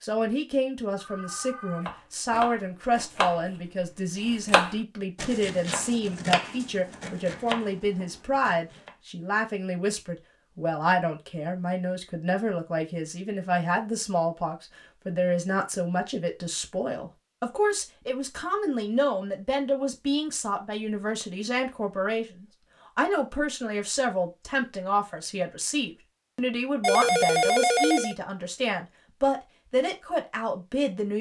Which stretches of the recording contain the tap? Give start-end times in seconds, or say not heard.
not heard.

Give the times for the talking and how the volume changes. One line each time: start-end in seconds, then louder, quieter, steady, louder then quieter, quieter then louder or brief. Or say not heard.
0.0-31.1 steady.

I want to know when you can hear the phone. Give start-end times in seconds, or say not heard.
0.9-1.9, 26.8-28.1.